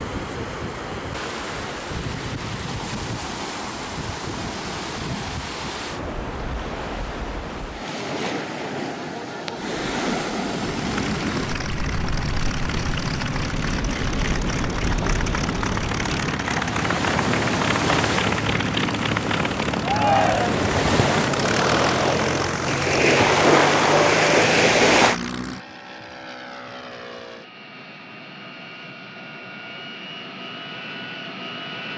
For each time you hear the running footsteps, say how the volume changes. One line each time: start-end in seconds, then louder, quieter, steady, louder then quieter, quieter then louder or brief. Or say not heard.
not heard.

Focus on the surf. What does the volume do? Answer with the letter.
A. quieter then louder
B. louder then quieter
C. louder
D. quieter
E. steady
C.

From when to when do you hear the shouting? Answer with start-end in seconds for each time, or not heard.
19.8-20.6.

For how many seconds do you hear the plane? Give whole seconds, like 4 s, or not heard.
21 s.